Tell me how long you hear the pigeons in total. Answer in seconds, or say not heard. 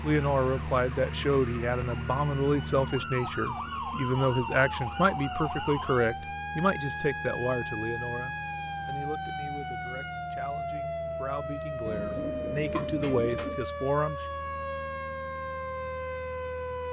2 s.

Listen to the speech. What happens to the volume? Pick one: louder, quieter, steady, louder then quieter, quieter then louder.
quieter then louder.